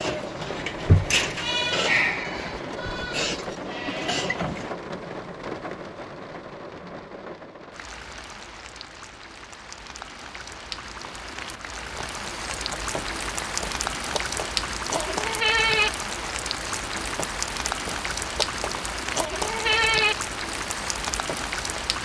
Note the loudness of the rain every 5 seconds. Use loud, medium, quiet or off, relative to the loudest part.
loud, medium, loud, loud, loud.